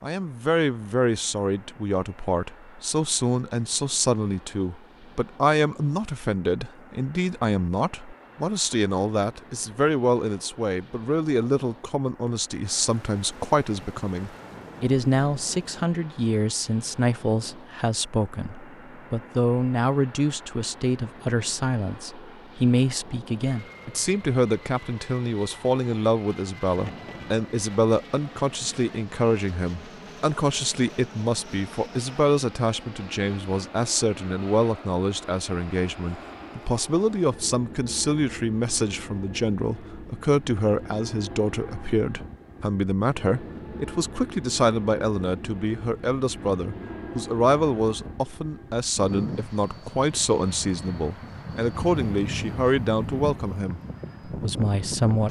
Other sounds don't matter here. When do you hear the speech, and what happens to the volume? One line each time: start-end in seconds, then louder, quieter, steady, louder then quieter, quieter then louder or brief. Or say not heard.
0.0-55.2 steady.